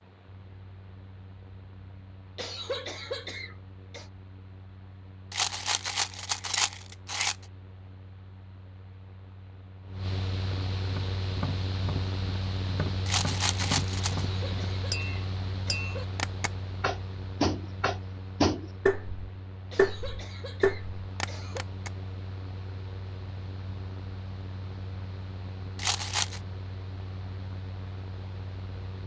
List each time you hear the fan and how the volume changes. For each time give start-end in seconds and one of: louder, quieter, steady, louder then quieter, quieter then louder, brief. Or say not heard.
0.0-29.0 louder then quieter.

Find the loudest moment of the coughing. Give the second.
3 s.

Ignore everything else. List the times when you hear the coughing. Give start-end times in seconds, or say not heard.
2.4-4.1, 14.2-16.1, 19.7-21.6.